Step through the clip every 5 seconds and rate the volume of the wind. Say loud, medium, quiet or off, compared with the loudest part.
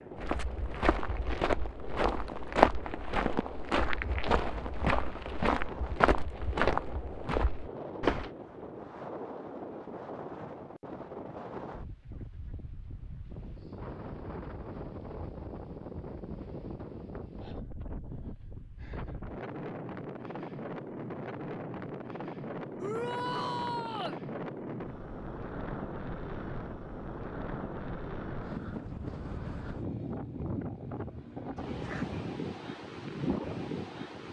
medium, medium, medium, medium, loud, loud, loud.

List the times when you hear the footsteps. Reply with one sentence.
You can hear the footsteps from 0.1 to 8.3 s.